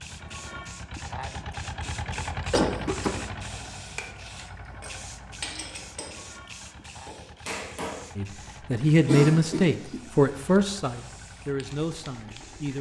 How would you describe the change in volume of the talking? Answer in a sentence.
The loudness of the talking goes down.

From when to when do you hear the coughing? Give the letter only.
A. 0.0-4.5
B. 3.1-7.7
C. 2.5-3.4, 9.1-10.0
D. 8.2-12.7
C.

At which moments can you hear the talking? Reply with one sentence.
The talking can be heard from 8.2 to 12.7 s.